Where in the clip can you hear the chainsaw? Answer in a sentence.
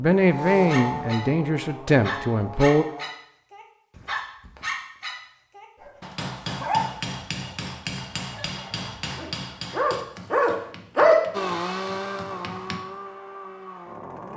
You can hear the chainsaw from 0.0 to 3.1 s and from 11.3 to 14.3 s.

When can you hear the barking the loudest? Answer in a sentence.
The volume of the barking peaks at 11 seconds.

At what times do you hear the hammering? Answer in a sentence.
The hammering can be heard from 5.8 to 12.8 s.